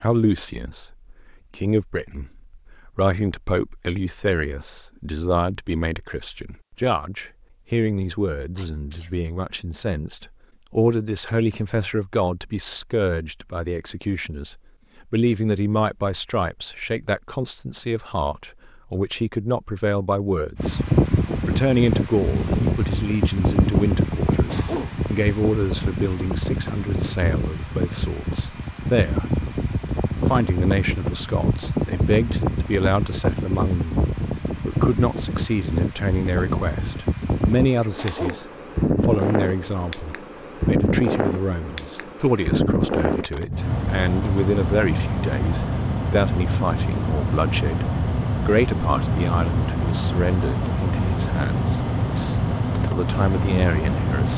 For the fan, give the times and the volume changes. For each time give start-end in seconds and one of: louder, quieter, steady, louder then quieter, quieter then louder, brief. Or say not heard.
20.6-54.3 steady.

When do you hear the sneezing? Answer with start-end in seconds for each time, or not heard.
8.6-9.1, 24.3-24.9, 37.8-38.4.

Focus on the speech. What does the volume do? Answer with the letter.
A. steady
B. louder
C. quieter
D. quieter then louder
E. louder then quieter
A.